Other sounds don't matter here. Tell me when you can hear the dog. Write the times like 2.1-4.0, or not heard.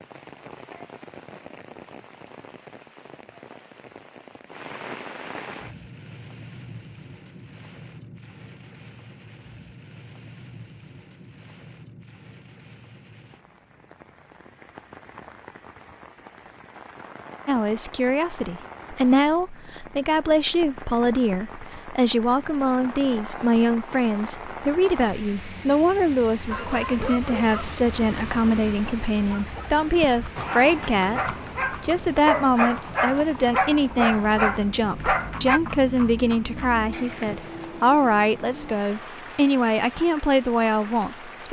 26.4-35.6.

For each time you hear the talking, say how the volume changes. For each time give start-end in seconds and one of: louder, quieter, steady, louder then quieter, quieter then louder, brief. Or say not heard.
17.4-41.4 steady.